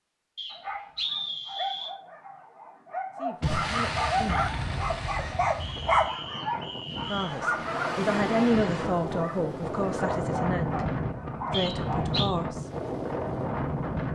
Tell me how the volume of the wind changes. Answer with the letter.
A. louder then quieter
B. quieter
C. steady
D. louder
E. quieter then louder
D.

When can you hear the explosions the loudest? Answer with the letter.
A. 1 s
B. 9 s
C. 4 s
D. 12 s
C.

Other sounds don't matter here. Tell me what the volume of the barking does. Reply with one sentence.
The volume of the barking goes up, then down.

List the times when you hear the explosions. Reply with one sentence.
You can hear the explosions from 3.4 to 6.1 s.